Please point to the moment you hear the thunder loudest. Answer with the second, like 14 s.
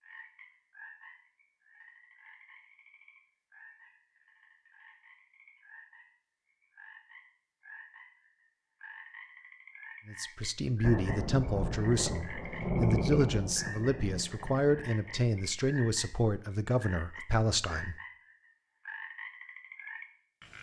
13 s.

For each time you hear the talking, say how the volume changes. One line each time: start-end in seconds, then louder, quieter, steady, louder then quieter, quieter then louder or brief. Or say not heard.
10.1-17.9 steady.